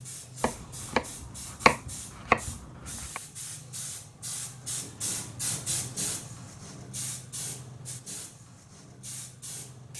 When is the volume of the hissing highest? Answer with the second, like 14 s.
6 s.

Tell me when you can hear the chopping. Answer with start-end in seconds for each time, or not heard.
0.4-3.2.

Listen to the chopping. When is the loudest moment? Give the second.
2 s.